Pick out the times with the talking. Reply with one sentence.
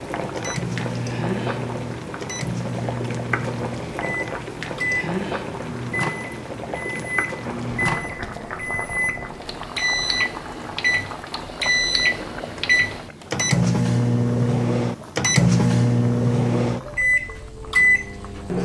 The talking can't be heard in this clip.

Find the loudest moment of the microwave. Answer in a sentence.
The volume of the microwave peaks at 16 seconds.